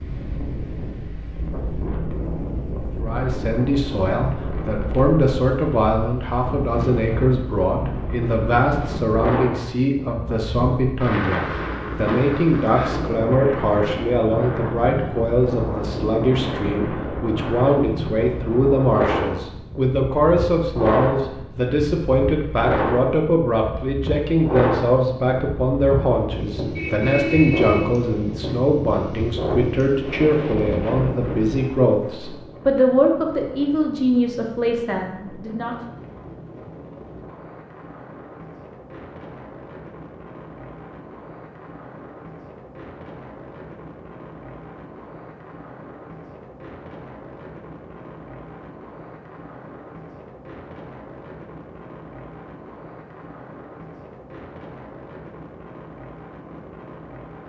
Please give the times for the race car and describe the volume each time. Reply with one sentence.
You can't hear the race car here.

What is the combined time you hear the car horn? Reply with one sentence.
You can hear the car horn for 2 seconds altogether.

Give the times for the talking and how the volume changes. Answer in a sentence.
The talking can be heard from 3.0 to 35.8 s, at a steady volume.